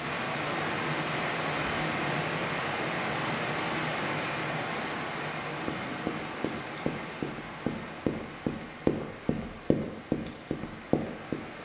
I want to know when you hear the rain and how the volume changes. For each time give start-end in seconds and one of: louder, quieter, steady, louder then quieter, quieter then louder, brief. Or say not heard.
0.0-11.6 quieter.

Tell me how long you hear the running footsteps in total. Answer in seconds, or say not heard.
6 s.